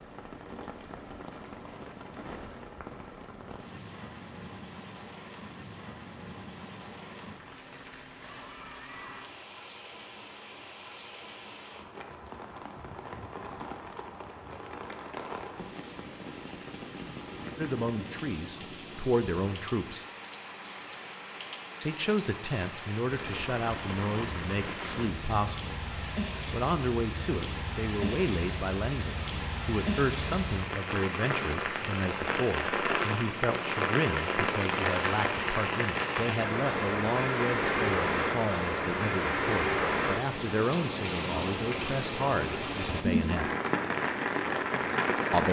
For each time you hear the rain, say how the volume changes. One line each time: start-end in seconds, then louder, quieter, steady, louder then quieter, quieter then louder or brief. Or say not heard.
0.0-45.4 louder.